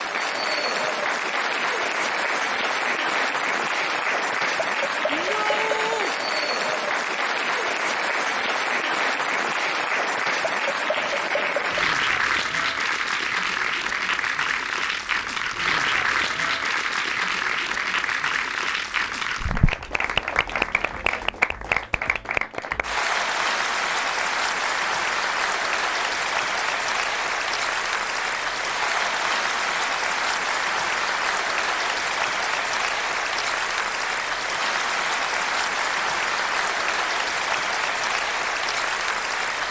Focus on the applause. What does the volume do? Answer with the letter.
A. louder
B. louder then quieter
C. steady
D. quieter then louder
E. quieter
C.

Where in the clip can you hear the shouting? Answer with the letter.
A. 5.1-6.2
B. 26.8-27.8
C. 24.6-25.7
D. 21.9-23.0
A.